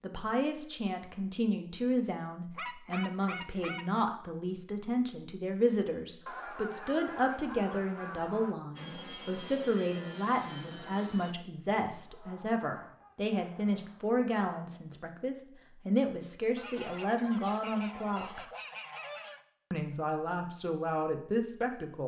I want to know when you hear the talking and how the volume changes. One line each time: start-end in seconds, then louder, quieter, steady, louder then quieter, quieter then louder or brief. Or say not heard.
0.0-18.4 steady
19.7-22.0 brief.